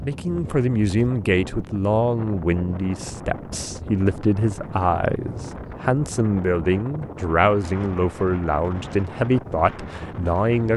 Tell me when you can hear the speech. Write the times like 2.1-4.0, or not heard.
0.0-10.7.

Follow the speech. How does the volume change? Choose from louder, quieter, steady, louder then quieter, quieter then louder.
steady.